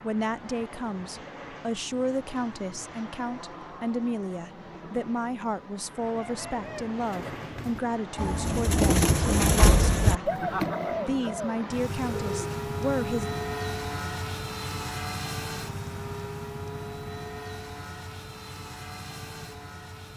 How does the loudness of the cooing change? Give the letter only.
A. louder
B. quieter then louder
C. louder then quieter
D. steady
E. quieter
C.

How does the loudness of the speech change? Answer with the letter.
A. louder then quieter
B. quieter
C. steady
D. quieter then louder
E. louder
C.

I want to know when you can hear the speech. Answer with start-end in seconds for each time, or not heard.
0.0-13.3.